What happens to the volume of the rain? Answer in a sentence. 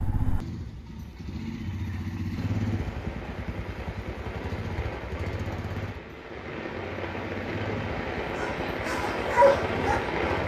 The volume of the rain goes up.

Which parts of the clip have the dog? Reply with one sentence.
You can hear the dog from 8.3 to 10.2 s.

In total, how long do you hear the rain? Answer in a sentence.
The rain can be heard for 8 seconds in total.